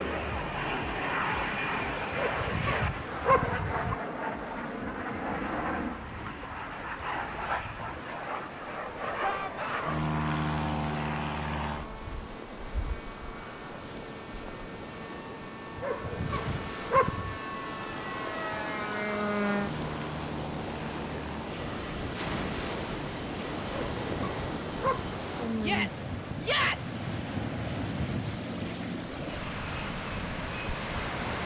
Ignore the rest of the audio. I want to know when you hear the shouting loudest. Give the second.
27 s.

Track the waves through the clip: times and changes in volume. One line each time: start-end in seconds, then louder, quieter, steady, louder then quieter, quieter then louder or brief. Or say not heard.
0.0-31.4 louder.